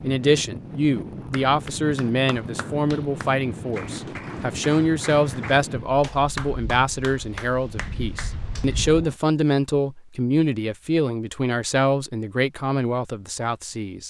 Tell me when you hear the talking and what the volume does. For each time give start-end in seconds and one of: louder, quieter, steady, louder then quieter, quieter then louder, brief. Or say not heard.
0.0-14.0 steady.